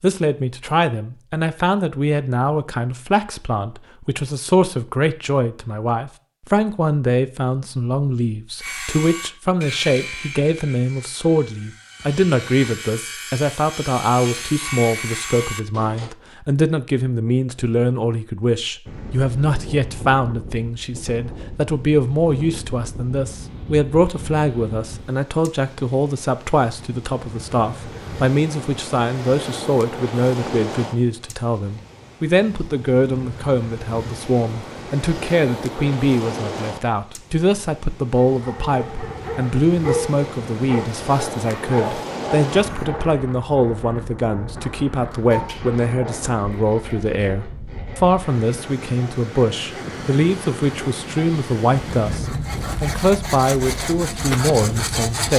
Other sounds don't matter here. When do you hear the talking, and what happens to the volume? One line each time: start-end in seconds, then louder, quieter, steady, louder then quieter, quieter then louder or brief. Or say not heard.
0.0-55.3 steady.